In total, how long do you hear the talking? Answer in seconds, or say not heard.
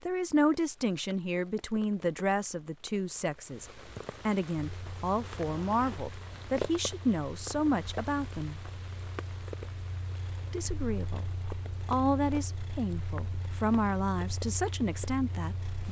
14 s.